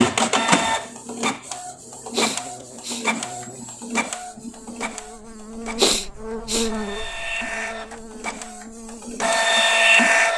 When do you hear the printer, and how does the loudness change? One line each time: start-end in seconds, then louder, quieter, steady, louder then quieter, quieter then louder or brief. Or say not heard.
0.0-10.3 quieter then louder.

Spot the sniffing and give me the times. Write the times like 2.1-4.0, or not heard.
2.1-3.0, 5.8-6.7.